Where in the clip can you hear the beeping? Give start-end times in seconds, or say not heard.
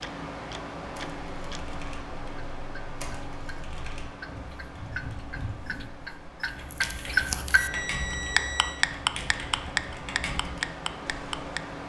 7.0-8.8.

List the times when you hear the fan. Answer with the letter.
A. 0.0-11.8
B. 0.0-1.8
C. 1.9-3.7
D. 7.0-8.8
A.